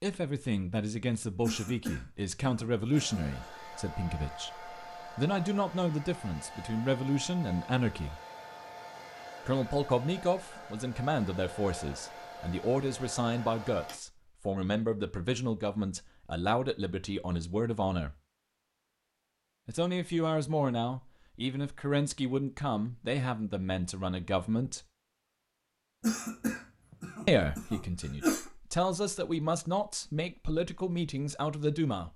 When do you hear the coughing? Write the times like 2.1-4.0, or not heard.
1.4-3.3, 26.0-28.5.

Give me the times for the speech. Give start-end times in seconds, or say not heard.
0.0-8.2, 9.4-18.1, 19.6-24.8, 27.2-32.1.